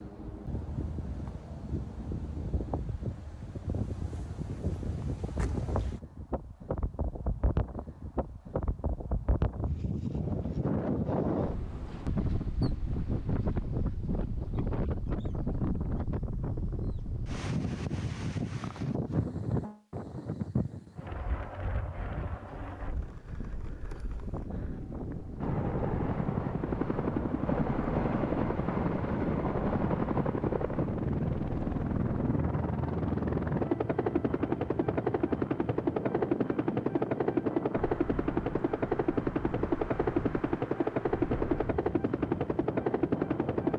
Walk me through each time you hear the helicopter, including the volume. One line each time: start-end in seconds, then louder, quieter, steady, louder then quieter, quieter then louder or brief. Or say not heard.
25.4-43.7 steady.